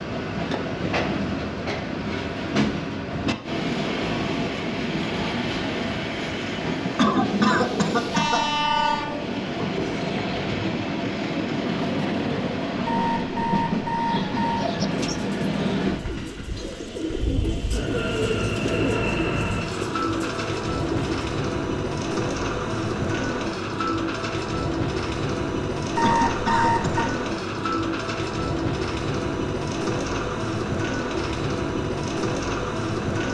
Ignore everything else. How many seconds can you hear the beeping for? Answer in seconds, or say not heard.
4 s.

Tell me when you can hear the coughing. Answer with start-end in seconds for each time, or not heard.
7.0-8.4, 26.0-27.1.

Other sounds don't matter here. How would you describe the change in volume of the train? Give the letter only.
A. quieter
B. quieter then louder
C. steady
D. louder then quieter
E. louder
C.